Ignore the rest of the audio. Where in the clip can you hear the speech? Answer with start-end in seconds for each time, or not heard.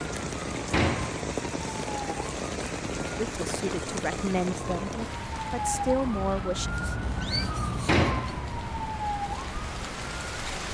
3.3-6.7.